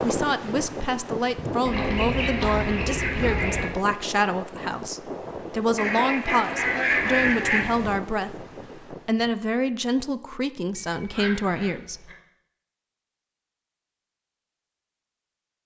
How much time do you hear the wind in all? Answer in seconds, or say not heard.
9 s.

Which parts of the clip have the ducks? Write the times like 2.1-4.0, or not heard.
1.6-3.6, 5.8-7.7, 10.8-12.2.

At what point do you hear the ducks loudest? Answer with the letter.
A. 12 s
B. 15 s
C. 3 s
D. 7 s
D.